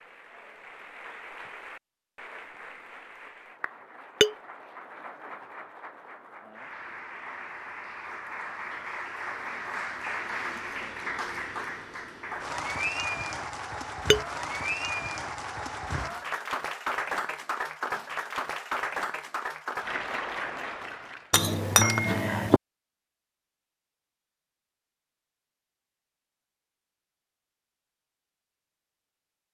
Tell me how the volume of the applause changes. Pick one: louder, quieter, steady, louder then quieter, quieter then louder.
louder.